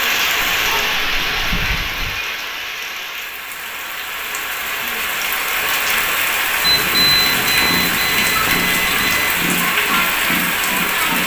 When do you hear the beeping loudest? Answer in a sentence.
The loudest moment of the beeping is at 7 seconds.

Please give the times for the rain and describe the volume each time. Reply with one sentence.
The rain can be heard from 0.0 to 11.2 s, getting quieter then louder.